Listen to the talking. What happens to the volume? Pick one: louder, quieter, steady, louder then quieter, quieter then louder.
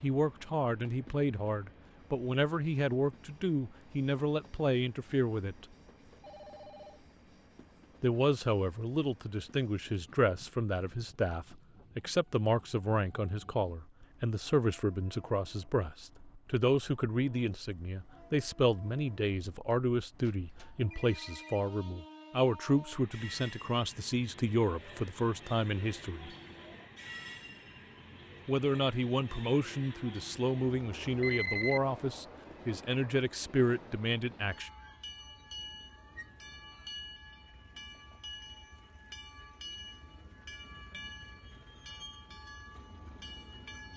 steady.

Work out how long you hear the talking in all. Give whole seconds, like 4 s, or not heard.
30 s.